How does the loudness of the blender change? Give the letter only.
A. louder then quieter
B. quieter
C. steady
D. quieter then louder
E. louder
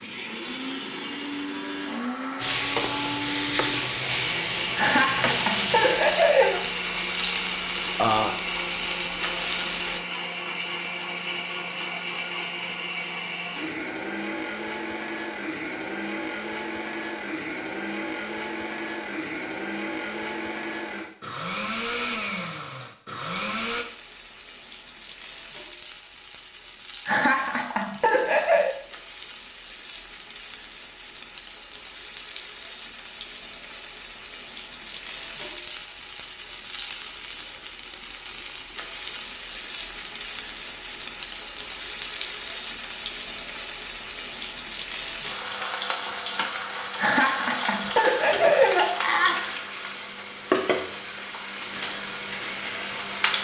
C.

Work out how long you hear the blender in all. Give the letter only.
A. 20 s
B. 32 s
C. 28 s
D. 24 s
D.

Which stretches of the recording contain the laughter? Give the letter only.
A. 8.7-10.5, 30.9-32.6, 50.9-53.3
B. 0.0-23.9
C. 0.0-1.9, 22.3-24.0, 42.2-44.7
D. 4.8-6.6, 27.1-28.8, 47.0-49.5
D.